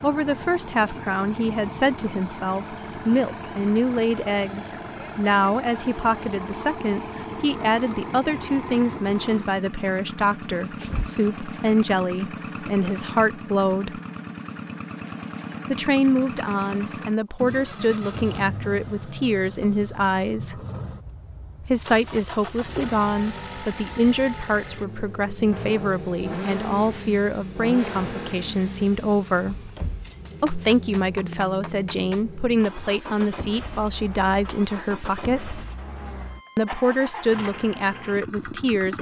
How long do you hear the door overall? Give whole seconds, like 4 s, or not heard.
2 s.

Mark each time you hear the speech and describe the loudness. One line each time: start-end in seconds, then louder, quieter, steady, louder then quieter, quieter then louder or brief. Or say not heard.
0.0-14.0 steady
15.7-20.6 steady
21.6-29.7 steady
30.4-35.6 steady
36.5-38.9 brief.